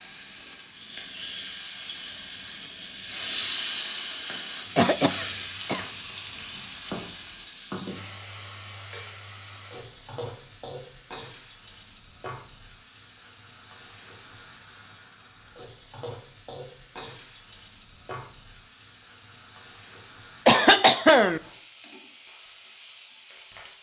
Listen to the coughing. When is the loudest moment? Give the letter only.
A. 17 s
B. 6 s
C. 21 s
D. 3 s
C.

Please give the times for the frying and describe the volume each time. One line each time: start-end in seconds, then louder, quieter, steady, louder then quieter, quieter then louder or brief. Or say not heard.
0.0-23.7 quieter.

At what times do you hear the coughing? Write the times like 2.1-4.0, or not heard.
4.8-5.8, 20.4-21.4.